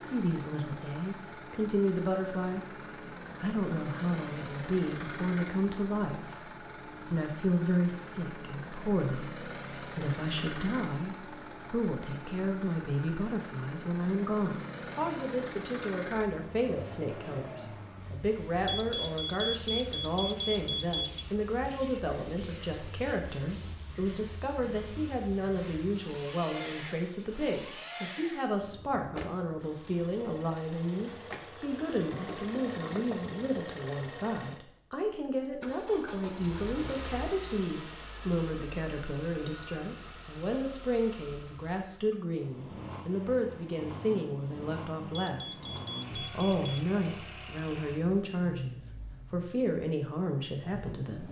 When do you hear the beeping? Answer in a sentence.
The beeping can be heard from 18.6 to 21.2 s and from 45.1 to 46.9 s.